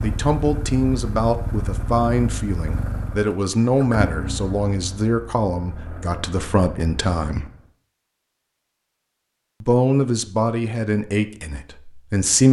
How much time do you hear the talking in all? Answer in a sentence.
The talking can be heard for 10 seconds in total.